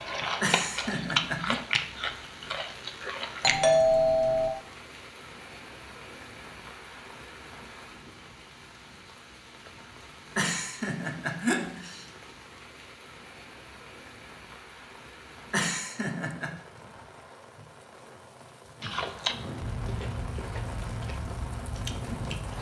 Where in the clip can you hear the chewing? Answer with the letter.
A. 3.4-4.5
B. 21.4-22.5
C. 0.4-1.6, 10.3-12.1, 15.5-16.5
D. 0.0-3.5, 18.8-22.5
D.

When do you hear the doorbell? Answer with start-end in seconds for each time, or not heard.
3.4-4.5.